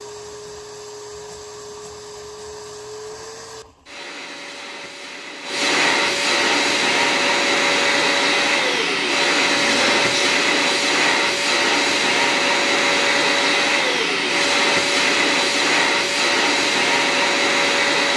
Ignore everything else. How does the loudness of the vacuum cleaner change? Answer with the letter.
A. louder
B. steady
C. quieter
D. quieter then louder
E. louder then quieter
A.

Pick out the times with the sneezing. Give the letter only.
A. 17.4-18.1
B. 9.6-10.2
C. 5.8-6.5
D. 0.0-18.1
B.